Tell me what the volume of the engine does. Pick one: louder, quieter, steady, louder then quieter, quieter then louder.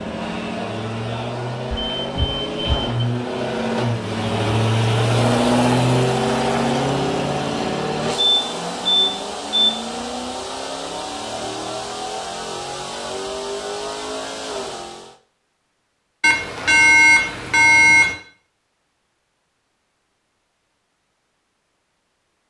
louder then quieter.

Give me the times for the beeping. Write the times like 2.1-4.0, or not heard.
1.7-3.0, 8.2-9.7, 16.2-18.1.